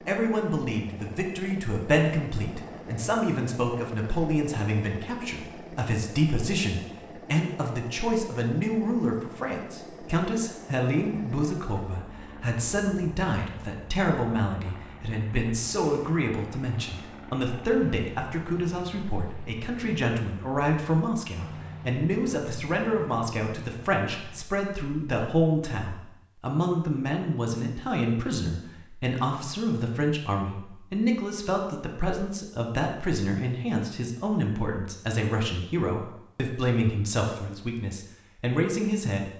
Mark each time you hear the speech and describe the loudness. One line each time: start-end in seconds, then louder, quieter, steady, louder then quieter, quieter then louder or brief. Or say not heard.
0.1-39.3 steady.